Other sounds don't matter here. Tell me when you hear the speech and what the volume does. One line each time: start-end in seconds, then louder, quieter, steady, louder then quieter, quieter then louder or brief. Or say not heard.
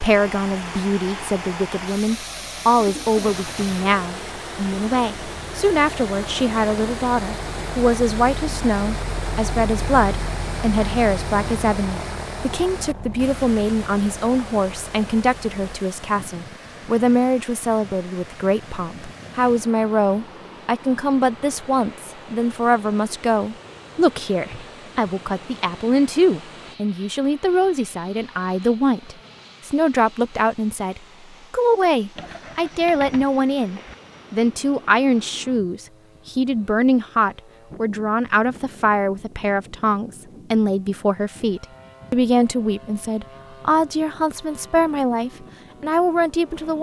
0.0-46.7 steady.